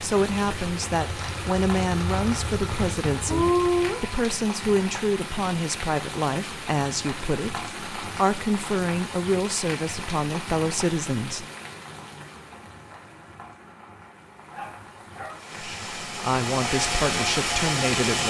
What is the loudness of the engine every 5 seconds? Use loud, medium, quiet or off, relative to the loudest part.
loud, off, off, loud.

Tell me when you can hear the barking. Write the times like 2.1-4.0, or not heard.
14.5-15.4.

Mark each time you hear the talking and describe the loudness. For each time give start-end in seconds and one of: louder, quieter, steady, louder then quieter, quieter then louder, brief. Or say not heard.
0.0-11.4 steady
15.6-18.2 brief.